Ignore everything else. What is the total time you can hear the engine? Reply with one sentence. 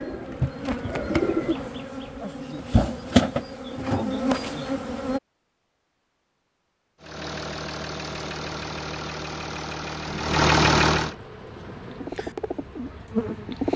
You can hear the engine for 4 seconds altogether.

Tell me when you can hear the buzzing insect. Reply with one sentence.
You can hear the buzzing insect from 0.0 to 5.2 s and from 10.1 to 13.6 s.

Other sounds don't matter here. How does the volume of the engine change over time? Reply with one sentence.
The volume of the engine goes up.